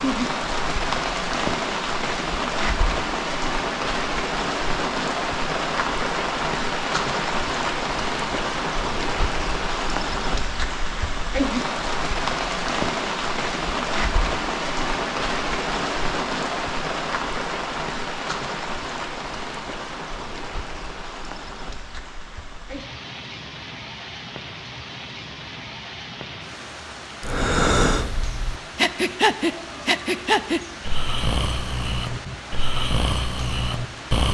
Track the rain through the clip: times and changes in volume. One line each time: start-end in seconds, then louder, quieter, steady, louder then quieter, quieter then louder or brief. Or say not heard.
0.0-34.2 quieter.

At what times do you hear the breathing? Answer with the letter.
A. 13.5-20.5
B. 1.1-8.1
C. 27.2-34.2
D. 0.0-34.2
C.